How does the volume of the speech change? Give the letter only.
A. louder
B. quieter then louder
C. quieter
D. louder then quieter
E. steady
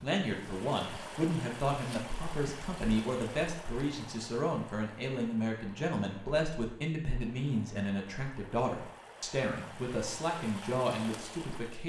E.